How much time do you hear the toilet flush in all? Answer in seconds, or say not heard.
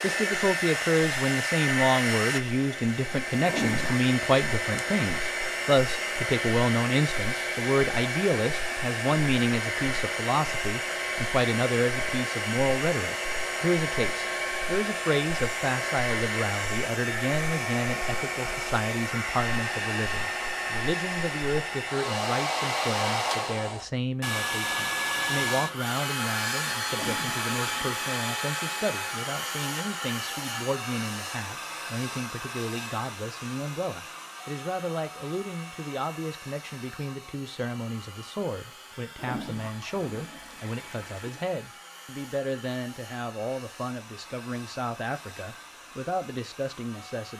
4 s.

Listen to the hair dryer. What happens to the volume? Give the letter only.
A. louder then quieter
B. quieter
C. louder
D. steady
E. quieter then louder
B.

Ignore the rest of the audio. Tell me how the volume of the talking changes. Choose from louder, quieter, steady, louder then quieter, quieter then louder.
quieter.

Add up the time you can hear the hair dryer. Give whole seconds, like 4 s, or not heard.
47 s.